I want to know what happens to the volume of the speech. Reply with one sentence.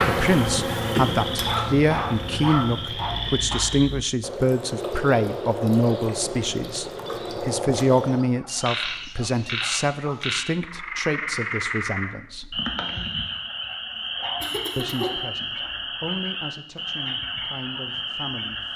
The volume of the speech goes down.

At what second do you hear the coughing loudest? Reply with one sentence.
The volume of the coughing peaks at 1 second.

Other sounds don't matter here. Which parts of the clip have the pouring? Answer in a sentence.
You can't hear the pouring here.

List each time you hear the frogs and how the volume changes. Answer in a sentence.
You can hear the frogs from 0.1 to 18.7 s, at a steady volume.